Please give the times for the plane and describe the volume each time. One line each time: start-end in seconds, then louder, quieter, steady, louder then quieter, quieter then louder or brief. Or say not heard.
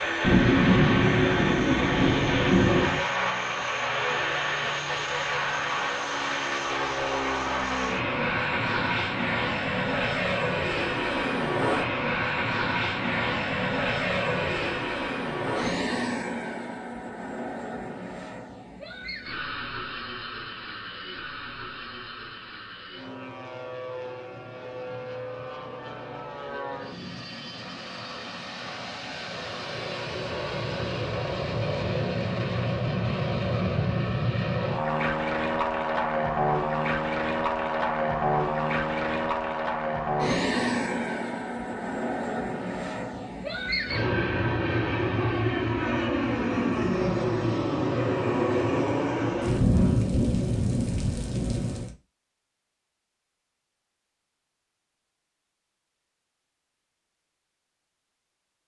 0.0-50.0 quieter then louder.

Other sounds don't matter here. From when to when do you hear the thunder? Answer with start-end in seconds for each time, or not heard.
0.2-3.0, 49.4-52.0.